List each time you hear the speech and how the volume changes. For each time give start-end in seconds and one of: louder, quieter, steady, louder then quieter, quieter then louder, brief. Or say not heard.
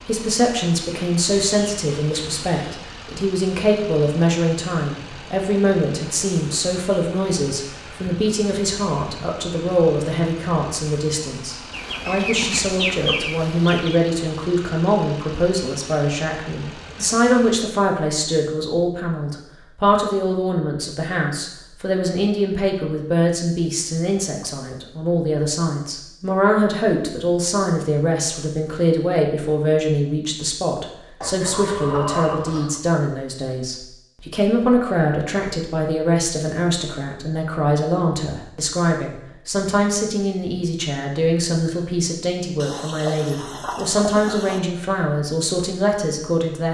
0.1-46.6 steady.